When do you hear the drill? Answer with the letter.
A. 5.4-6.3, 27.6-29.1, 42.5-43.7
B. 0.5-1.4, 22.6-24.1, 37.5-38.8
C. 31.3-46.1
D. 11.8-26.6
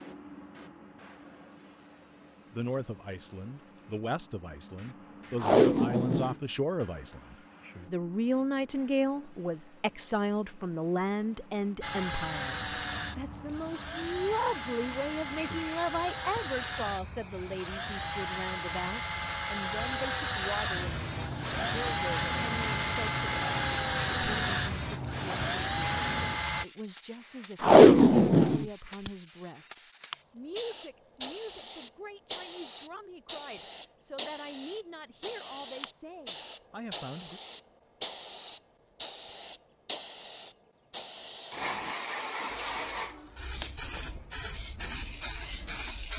D.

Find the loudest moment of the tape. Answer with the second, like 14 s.
28 s.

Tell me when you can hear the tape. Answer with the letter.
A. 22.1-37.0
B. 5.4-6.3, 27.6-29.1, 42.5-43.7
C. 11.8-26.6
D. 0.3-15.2
B.